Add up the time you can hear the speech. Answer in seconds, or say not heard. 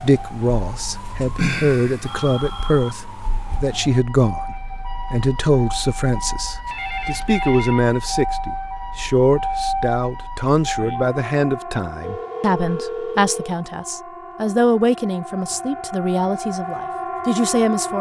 18 s.